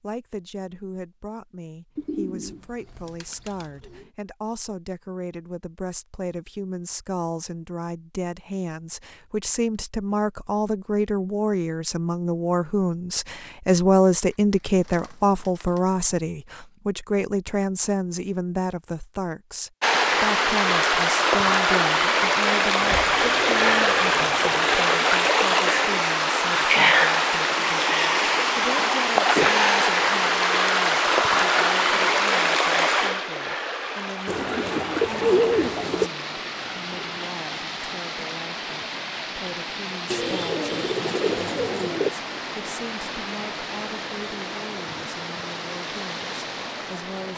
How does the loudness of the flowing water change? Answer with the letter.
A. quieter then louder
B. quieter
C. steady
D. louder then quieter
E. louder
B.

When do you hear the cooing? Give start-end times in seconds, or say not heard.
1.9-4.1, 14.8-15.8, 22.8-24.8, 34.2-36.1, 40.1-42.1.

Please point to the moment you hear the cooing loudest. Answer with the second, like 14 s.
35 s.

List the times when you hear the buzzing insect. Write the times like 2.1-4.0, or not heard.
not heard.